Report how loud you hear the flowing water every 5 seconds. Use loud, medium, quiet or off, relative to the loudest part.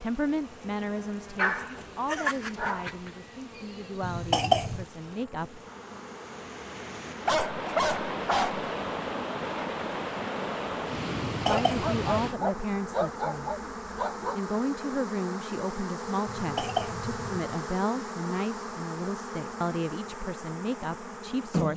quiet, loud, loud, off, off.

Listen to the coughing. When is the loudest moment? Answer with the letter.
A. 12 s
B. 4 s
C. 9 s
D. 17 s
B.